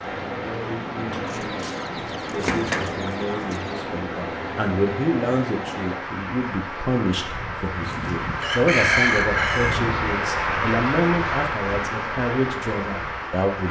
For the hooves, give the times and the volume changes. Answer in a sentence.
You can't hear the hooves here.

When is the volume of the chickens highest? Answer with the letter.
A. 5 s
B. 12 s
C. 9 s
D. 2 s
C.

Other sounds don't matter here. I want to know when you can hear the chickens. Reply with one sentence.
The chickens can be heard from 1.1 to 3.8 s and from 7.8 to 9.8 s.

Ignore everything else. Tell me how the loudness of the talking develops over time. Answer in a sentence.
The volume of the talking goes up.